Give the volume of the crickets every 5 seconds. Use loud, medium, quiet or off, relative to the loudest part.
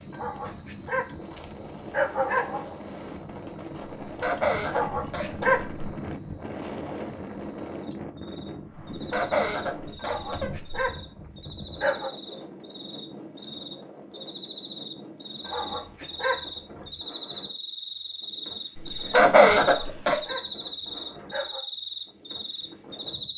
medium, quiet, medium, loud, loud.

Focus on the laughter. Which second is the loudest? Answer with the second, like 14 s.
19 s.